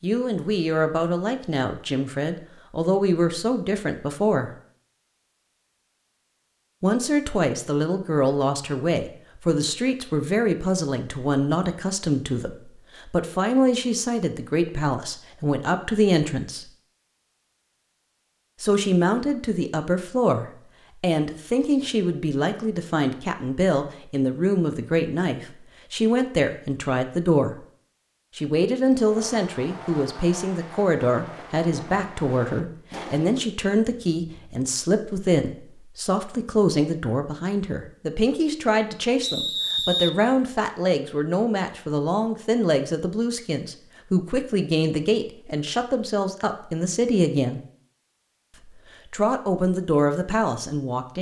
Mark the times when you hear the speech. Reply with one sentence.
You can hear the speech from 0.0 to 4.5 s, from 6.8 to 16.7 s, from 18.6 to 27.6 s, from 28.4 to 47.6 s and from 48.6 to 51.1 s.